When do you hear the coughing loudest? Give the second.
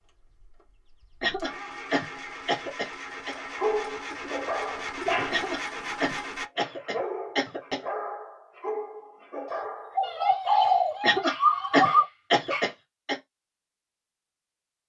12 s.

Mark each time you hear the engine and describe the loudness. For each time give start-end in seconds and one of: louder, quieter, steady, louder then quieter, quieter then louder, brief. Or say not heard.
0.0-6.5 louder.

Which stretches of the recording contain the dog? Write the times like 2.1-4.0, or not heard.
3.4-12.8.